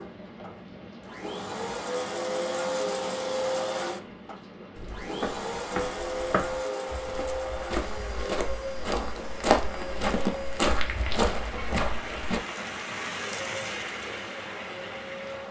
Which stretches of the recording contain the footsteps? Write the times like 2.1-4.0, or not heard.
4.8-12.4.